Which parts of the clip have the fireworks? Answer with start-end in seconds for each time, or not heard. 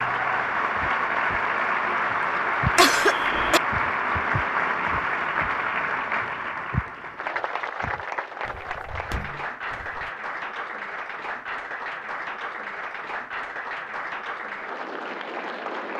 not heard.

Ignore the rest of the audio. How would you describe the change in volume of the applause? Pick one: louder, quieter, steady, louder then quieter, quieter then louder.
quieter.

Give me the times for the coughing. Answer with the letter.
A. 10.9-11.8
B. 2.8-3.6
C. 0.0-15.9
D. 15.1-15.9
B.